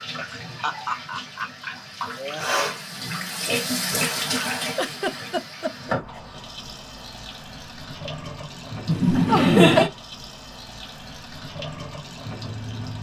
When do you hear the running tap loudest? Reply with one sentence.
The loudest moment of the running tap is at 4 seconds.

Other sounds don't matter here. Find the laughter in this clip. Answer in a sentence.
The laughter can be heard from 0.1 to 2.5 s, from 4.8 to 6.2 s and from 8.8 to 9.9 s.